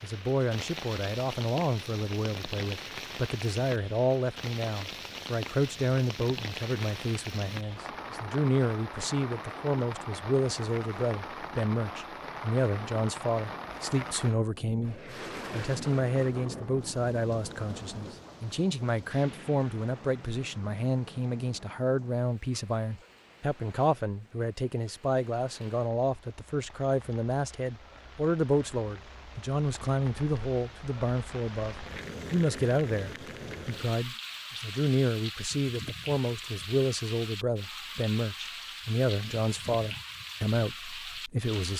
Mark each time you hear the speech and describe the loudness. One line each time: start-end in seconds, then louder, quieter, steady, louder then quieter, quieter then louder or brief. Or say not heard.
0.0-41.7 steady.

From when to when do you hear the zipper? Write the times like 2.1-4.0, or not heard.
not heard.